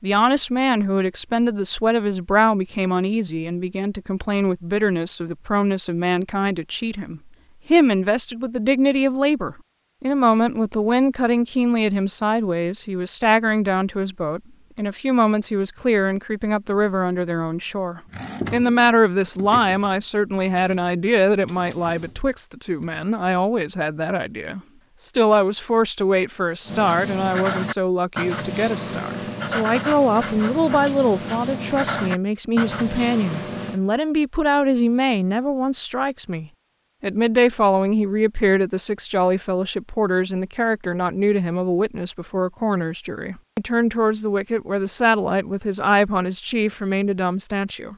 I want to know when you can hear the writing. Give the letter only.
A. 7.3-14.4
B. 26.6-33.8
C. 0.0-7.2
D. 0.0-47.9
B.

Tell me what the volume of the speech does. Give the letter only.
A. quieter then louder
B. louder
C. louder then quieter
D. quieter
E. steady
E.